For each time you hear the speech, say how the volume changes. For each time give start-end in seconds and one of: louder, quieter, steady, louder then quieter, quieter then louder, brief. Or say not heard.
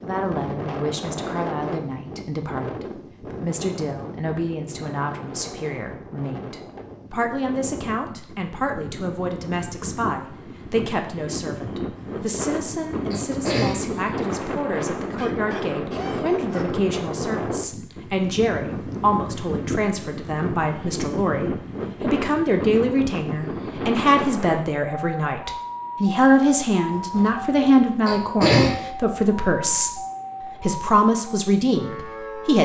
0.0-32.6 louder.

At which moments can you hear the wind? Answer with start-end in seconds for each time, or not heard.
0.0-24.9.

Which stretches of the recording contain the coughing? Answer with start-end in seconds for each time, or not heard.
11.9-13.8, 26.9-28.8.